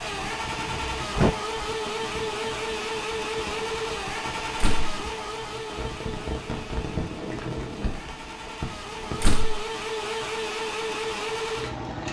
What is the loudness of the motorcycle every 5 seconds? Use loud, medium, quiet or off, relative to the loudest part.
loud, medium, loud.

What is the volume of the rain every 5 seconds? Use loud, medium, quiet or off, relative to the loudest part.
medium, loud, off.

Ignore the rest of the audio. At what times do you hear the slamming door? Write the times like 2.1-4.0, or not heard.
0.1-1.3, 4.5-5.0, 9.2-9.7.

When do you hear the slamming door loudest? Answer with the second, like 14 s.
1 s.